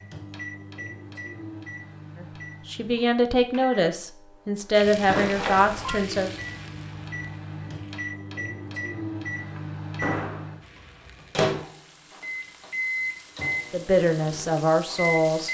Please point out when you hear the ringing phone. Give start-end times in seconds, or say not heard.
5.0-6.0.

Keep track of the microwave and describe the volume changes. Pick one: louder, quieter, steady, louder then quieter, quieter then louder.
louder.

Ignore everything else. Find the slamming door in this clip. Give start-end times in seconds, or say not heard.
9.3-10.6.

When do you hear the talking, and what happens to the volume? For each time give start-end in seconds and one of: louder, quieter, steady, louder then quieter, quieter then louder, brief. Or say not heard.
2.2-6.3 quieter then louder
13.7-15.4 brief.